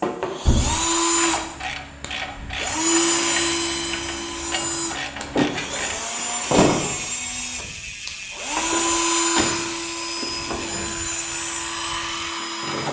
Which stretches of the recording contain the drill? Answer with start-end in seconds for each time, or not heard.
0.0-12.8.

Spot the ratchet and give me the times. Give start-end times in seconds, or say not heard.
1.1-12.3.